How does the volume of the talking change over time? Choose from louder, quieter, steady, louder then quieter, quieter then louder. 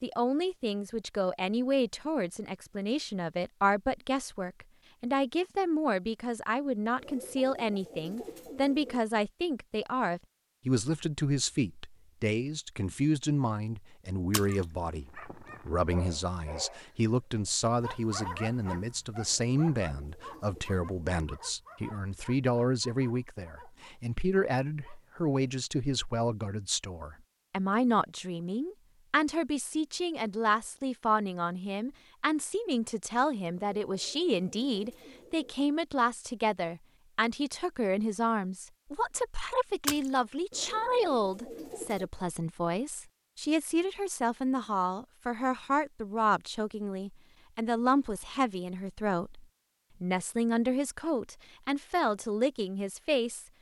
steady.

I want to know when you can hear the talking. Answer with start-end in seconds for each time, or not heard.
0.0-53.5.